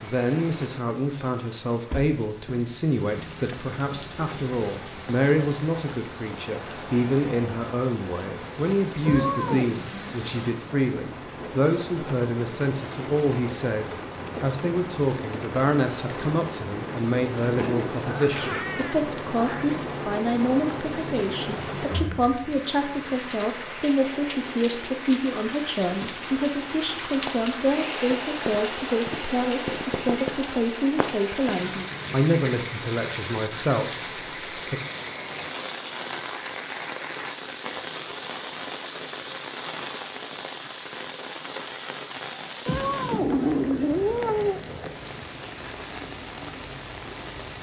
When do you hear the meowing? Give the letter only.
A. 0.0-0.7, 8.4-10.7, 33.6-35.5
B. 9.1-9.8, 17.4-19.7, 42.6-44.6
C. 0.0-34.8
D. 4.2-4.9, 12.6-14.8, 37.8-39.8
B.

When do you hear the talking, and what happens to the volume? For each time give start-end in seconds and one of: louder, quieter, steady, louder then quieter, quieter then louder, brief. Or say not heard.
0.0-34.8 steady.